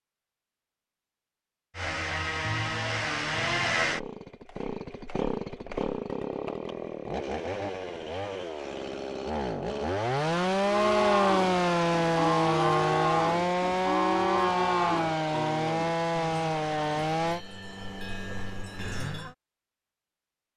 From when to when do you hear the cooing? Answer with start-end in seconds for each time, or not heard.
not heard.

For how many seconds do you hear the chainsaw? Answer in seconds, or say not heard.
16 s.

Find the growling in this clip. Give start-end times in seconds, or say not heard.
not heard.